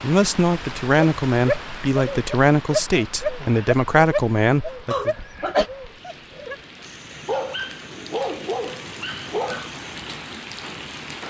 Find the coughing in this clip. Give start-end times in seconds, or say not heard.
4.9-5.7.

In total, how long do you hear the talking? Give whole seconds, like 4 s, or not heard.
5 s.